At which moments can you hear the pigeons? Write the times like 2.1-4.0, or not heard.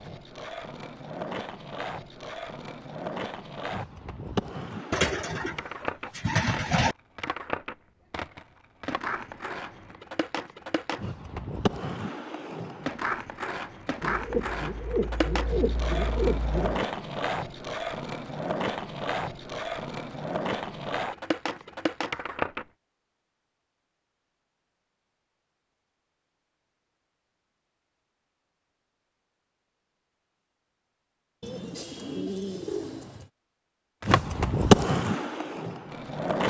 4.9-7.0, 14.0-16.9, 31.4-33.3.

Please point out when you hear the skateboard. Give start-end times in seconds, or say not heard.
0.0-22.6, 34.0-36.4.